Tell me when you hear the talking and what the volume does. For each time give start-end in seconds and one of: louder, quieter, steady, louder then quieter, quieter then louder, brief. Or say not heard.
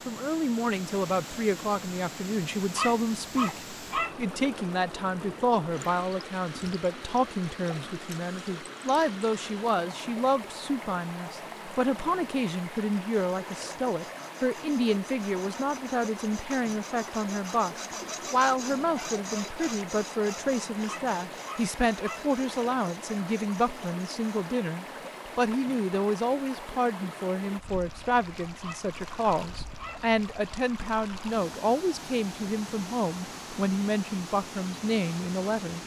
0.1-35.8 steady.